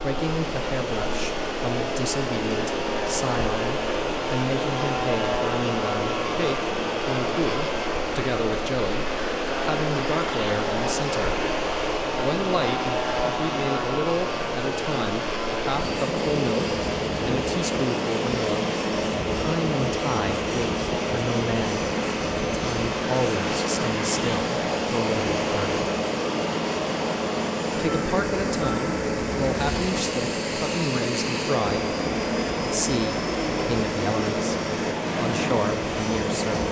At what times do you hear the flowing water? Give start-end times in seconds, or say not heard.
0.0-36.6.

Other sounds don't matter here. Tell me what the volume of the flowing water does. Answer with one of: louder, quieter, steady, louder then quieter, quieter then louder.
steady.